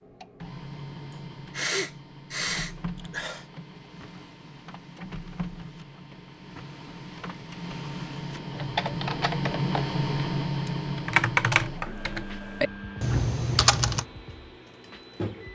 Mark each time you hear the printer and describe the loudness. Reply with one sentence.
The printer can be heard from 0.0 to 15.5 s, getting louder then quieter.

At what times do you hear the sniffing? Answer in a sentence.
You can hear the sniffing from 1.1 to 3.5 s.